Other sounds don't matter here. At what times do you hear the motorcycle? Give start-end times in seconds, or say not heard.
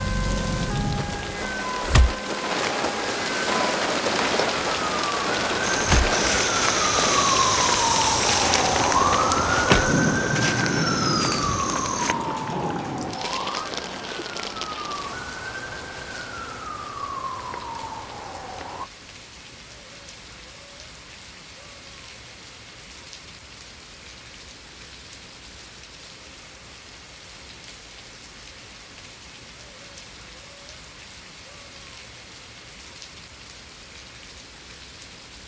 not heard.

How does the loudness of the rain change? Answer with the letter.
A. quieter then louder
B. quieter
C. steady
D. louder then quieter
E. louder
B.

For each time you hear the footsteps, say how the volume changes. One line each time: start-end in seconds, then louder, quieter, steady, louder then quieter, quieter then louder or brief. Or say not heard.
5.7-12.3 quieter.